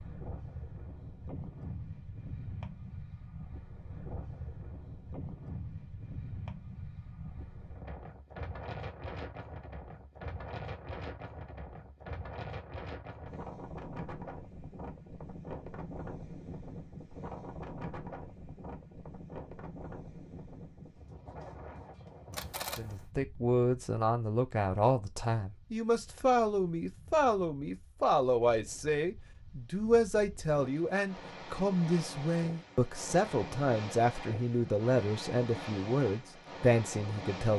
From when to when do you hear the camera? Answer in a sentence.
You can hear the camera from 22.3 to 23.1 s.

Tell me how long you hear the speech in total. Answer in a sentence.
The speech can be heard for 15 seconds in total.